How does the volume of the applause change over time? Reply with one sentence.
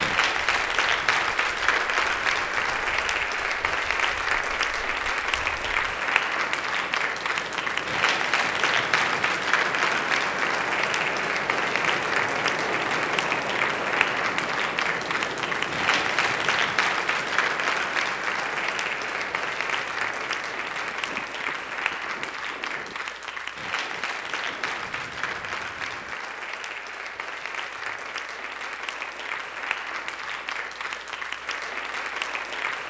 The loudness of the applause goes down.